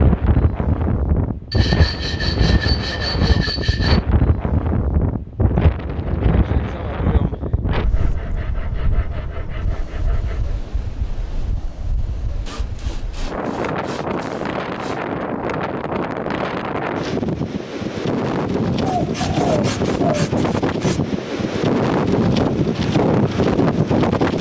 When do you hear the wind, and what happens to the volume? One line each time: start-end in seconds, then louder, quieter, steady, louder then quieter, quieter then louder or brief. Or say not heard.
0.0-24.3 quieter then louder.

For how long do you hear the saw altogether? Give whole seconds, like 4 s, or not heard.
10 s.